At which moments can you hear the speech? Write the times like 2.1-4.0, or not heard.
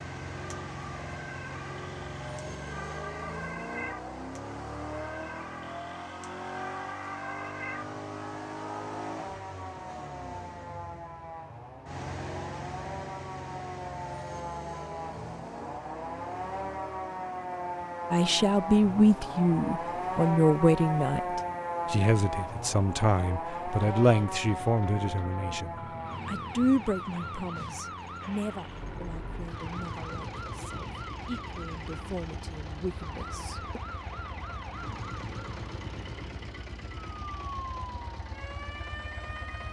18.1-33.8.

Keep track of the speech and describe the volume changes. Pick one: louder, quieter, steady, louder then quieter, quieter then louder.
quieter.